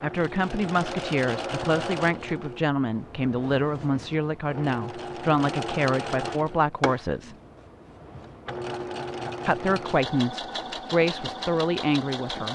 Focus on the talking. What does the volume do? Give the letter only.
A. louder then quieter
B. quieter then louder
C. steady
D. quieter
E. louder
C.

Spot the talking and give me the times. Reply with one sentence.
You can hear the talking from 0.0 to 7.3 s and from 9.4 to 12.5 s.